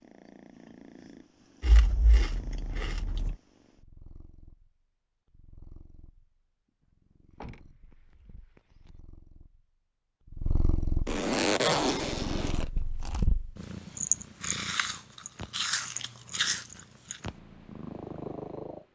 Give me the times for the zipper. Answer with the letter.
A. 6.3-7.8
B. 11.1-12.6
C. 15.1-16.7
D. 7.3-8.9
B.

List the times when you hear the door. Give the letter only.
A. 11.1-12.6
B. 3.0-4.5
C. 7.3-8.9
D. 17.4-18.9
C.